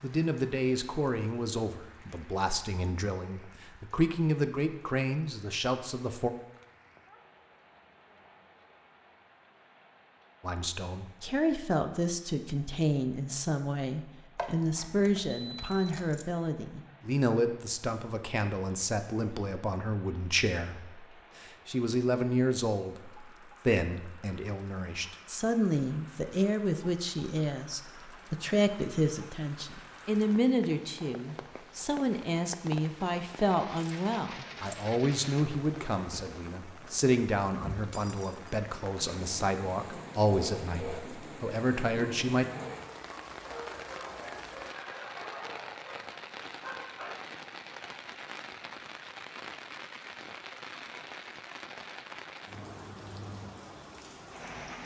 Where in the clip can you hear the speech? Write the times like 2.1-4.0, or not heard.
0.0-6.3, 10.4-42.5.